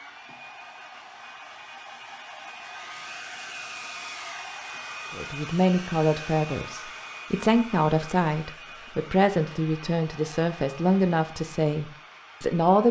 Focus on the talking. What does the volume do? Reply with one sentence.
The loudness of the talking stays about the same.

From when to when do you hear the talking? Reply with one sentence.
You can hear the talking from 5.1 to 12.8 s.